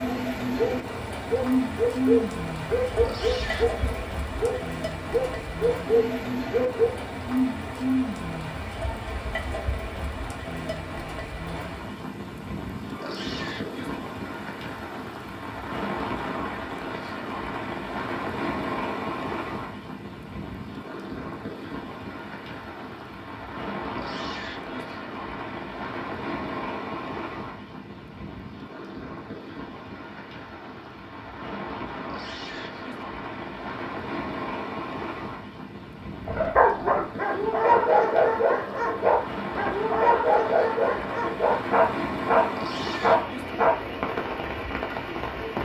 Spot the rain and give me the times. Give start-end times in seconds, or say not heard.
0.0-45.6.